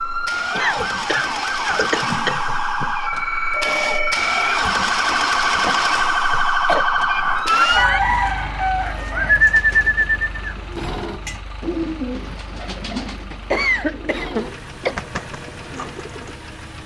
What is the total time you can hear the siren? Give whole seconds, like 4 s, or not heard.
8 s.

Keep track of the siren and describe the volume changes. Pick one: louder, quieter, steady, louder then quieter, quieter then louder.
louder.